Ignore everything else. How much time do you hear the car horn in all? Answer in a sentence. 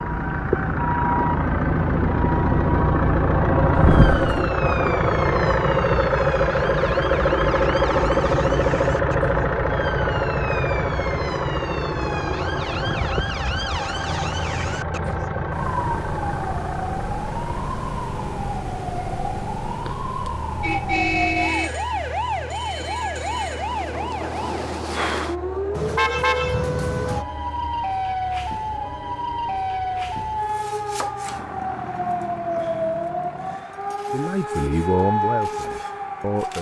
You can hear the car horn for 3 seconds altogether.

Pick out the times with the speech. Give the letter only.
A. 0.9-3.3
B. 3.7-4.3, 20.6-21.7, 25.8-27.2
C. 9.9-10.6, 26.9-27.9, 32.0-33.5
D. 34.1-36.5
D.